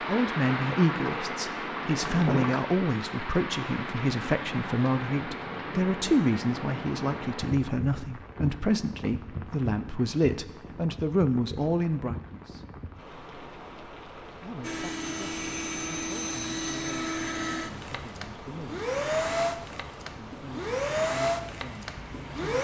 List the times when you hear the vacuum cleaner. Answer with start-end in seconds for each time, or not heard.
14.6-22.5.